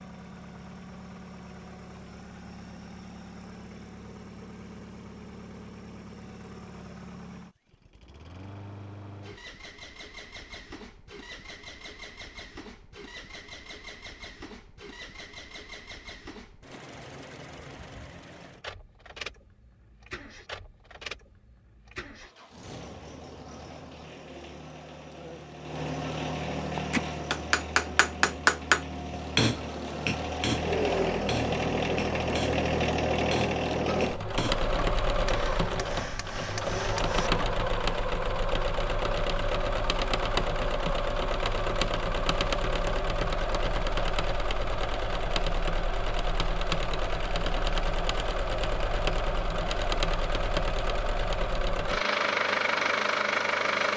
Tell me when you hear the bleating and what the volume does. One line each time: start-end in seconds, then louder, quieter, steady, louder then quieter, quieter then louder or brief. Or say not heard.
not heard.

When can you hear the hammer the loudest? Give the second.
29 s.